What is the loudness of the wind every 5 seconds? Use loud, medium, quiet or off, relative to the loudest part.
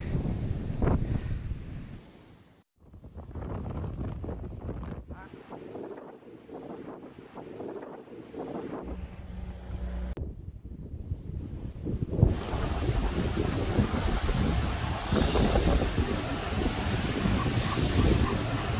medium, quiet, loud, loud.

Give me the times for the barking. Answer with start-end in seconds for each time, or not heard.
17.2-18.7.